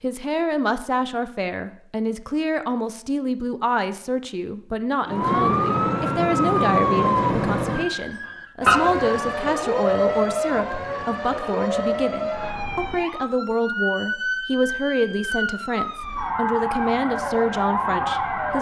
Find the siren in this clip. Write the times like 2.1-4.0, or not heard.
5.0-18.5.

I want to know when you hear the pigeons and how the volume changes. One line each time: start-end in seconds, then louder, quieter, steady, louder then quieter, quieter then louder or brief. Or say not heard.
not heard.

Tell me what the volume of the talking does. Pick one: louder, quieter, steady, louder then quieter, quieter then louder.
steady.